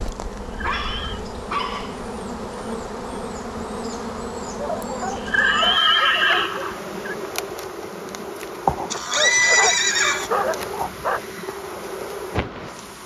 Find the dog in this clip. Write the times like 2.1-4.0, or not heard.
0.6-2.0, 4.5-6.7, 8.9-11.2.